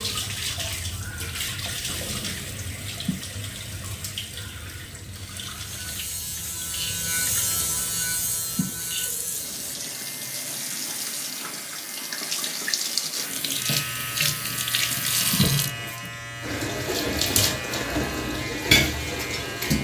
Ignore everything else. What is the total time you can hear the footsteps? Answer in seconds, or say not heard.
not heard.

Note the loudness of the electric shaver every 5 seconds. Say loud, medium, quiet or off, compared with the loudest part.
off, loud, medium, loud.